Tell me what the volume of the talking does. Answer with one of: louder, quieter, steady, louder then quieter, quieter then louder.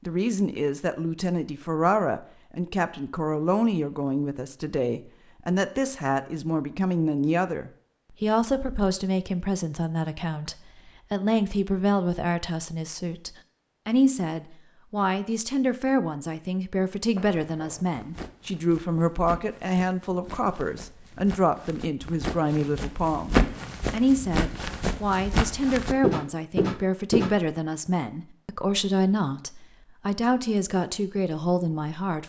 steady.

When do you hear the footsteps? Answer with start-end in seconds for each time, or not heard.
17.1-27.4.